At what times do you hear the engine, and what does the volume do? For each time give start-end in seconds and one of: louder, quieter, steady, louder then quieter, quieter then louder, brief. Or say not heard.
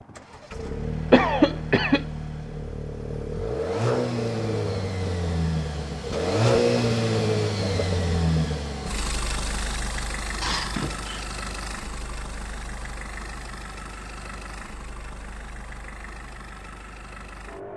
0.0-17.7 louder then quieter.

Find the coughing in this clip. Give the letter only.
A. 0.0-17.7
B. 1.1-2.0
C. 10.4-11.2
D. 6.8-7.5
B.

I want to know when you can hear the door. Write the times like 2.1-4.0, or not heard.
10.4-11.2.